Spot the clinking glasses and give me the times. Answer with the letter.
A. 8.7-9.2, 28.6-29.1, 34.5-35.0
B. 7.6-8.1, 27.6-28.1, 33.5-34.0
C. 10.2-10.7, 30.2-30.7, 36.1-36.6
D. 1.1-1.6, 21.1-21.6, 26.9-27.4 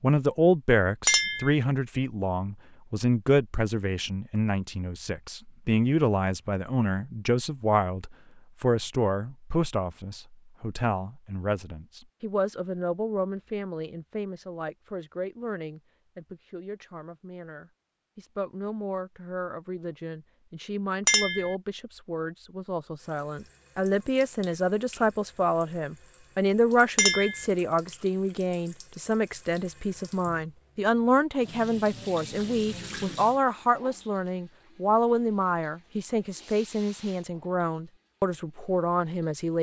D.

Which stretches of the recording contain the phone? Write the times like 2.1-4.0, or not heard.
not heard.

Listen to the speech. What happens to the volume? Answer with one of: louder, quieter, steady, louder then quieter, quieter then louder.
quieter then louder.